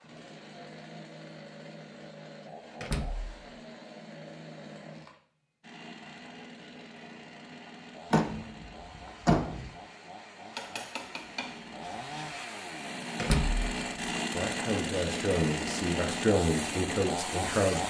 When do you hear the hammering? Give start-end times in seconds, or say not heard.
10.5-12.4.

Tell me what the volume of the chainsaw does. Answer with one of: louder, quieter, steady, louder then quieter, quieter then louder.
louder.